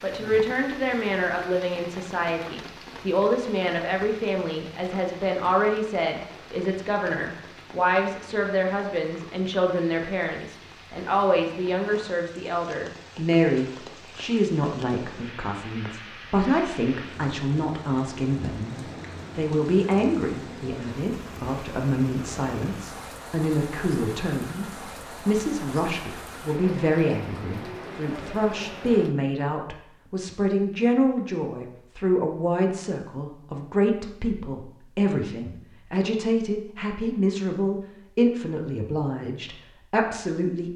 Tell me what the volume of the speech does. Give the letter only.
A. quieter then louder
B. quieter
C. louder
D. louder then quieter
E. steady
E.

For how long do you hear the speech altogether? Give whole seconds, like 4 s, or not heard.
41 s.